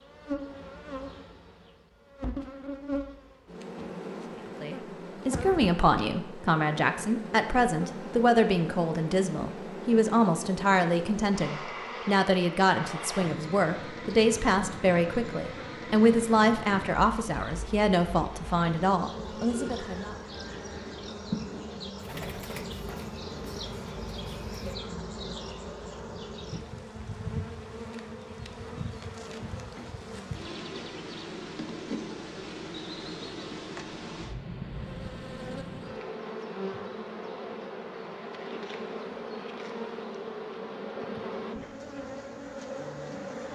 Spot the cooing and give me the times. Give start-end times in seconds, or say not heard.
19.3-24.8.